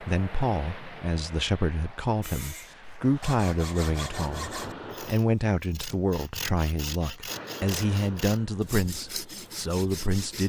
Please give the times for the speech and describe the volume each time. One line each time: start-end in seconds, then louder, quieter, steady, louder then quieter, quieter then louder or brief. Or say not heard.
0.0-10.4 steady.